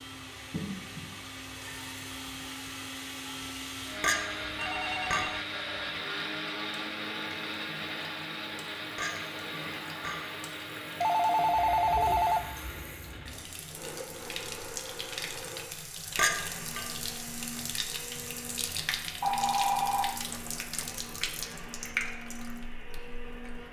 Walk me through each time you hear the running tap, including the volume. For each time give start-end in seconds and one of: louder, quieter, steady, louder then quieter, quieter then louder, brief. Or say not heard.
0.0-23.6 louder.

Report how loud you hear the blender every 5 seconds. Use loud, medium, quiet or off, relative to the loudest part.
loud, loud, medium, medium, medium.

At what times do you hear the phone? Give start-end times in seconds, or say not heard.
4.3-5.5, 10.8-12.4, 19.2-20.9.